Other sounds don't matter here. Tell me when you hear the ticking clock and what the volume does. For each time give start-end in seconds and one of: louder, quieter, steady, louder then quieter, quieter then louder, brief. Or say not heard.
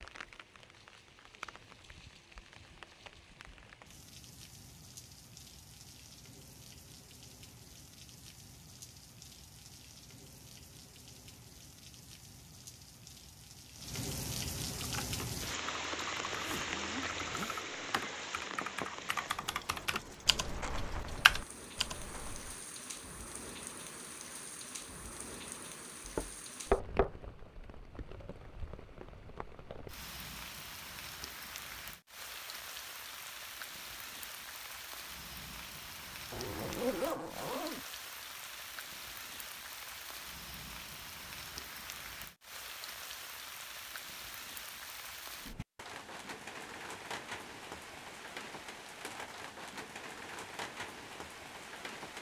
not heard.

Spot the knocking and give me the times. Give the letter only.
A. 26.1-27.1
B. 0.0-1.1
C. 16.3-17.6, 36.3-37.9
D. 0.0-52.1
A.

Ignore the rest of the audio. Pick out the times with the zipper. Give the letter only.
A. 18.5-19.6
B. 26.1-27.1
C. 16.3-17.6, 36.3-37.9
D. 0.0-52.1
C.